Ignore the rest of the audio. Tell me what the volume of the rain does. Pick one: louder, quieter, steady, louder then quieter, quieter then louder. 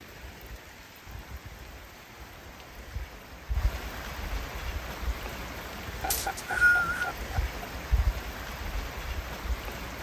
louder.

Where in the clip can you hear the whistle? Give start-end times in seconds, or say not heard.
6.1-7.2.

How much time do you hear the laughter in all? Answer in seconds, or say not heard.
2 s.